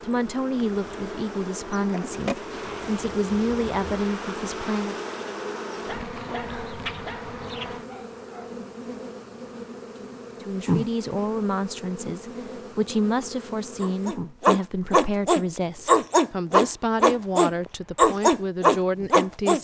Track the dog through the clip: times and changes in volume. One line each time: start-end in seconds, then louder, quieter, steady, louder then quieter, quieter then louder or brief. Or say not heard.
5.8-8.6 brief
13.8-19.5 steady.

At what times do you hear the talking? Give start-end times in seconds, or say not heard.
0.0-5.0, 10.4-19.5.